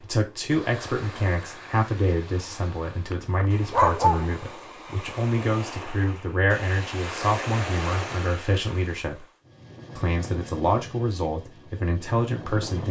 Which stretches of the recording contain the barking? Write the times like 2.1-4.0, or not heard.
3.1-4.4.